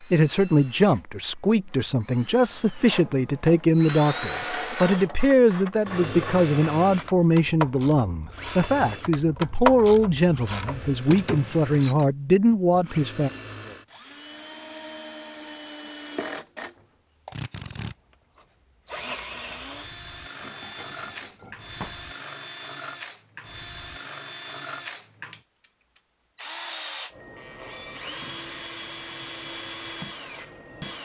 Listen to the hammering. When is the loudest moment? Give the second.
22 s.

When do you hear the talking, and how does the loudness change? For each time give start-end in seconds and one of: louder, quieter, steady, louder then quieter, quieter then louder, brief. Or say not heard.
0.1-13.3 steady.